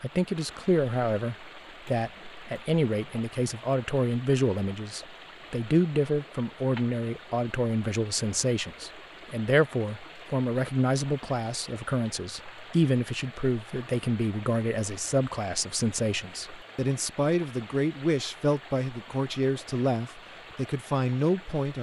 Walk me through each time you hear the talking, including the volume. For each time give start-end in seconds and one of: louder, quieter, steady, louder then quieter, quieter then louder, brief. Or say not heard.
0.0-21.7 steady.